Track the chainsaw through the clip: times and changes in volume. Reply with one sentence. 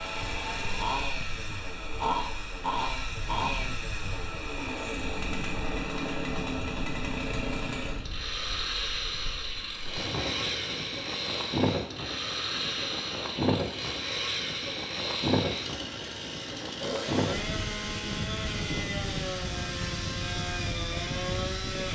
The chainsaw can be heard from 0.0 to 21.9 s, at a steady volume.